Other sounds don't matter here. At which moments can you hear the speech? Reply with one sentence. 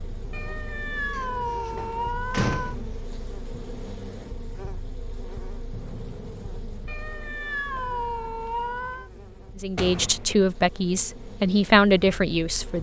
You can hear the speech from 9.6 to 12.7 s.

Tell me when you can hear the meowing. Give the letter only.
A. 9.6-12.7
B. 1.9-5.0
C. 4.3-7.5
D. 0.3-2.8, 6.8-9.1
D.